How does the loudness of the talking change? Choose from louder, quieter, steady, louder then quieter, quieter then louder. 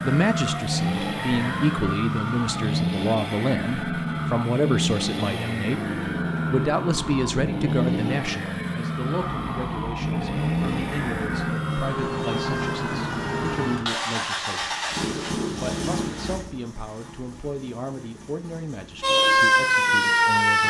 quieter.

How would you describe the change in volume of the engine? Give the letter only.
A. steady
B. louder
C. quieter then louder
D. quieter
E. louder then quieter
D.